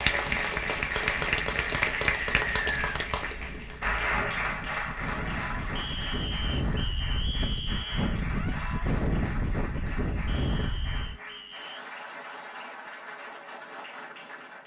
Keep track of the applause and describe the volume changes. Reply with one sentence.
The volume of the applause goes down.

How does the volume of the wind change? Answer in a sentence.
The loudness of the wind goes up.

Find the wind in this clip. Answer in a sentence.
You can hear the wind from 0.2 to 11.2 s.